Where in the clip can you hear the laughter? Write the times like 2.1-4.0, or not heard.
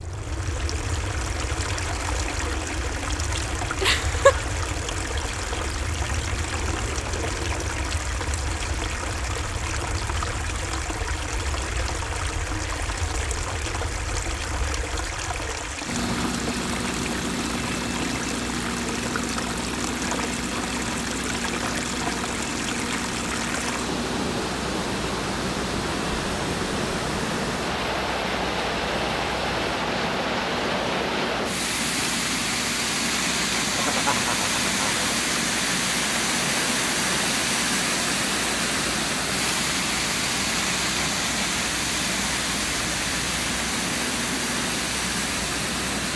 3.8-4.5, 33.8-35.2.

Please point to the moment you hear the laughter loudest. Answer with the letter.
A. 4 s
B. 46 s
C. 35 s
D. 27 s
A.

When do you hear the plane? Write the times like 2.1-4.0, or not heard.
0.0-46.1.